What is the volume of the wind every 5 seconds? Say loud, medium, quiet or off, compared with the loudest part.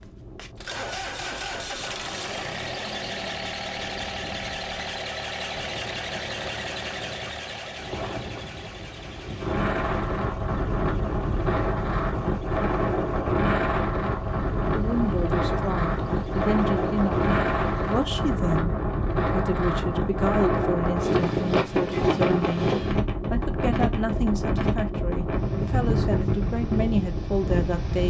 quiet, medium, loud, loud, loud, loud.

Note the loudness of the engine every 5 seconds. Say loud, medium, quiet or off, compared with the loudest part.
loud, loud, quiet, quiet, off, off.